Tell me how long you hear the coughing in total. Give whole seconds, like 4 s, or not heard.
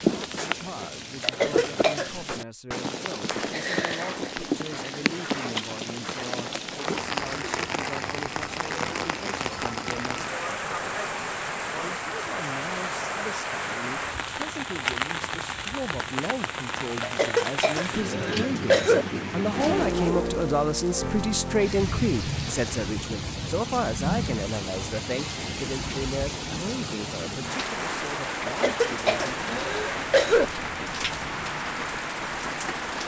5 s.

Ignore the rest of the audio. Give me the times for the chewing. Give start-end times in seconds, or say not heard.
not heard.